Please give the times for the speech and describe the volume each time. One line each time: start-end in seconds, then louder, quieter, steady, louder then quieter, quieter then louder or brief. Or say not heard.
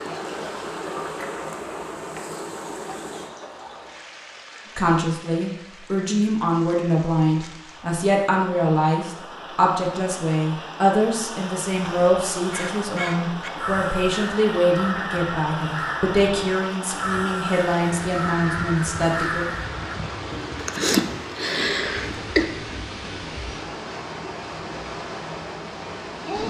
4.8-19.4 steady.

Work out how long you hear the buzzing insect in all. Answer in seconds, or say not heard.
3 s.